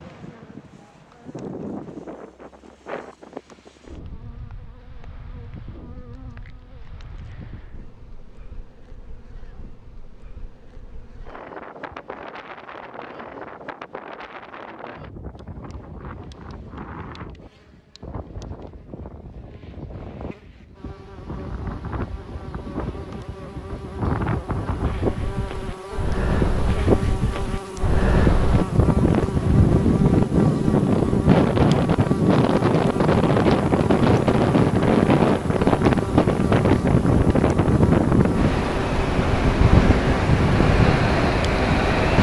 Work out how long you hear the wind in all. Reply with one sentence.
You can hear the wind for 42 seconds altogether.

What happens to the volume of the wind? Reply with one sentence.
The volume of the wind goes up.